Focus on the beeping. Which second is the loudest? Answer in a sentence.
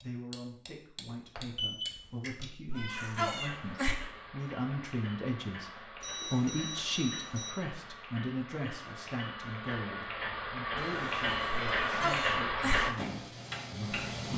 The volume of the beeping peaks at 2 seconds.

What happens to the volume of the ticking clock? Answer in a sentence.
The volume of the ticking clock goes up.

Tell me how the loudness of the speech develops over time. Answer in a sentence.
The loudness of the speech goes up, then down.